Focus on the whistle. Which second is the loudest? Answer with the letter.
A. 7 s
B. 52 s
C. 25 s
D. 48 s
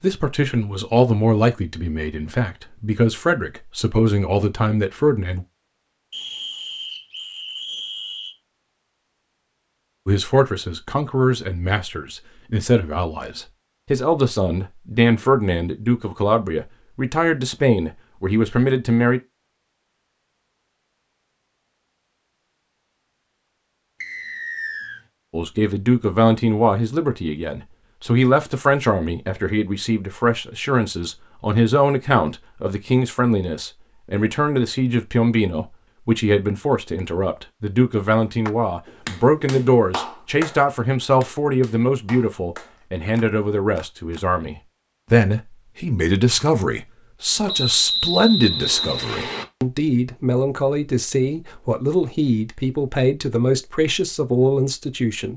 D.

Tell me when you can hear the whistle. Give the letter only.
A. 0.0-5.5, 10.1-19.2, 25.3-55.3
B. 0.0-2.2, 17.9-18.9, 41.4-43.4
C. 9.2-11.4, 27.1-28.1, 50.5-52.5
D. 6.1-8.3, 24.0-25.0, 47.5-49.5
D.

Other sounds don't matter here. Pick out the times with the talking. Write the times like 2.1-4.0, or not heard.
0.0-5.5, 10.1-19.2, 25.3-55.3.